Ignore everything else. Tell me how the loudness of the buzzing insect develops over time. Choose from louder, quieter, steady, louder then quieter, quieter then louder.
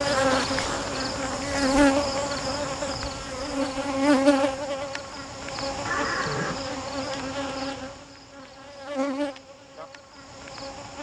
quieter.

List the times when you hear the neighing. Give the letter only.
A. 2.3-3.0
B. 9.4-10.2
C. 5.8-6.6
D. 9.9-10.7
C.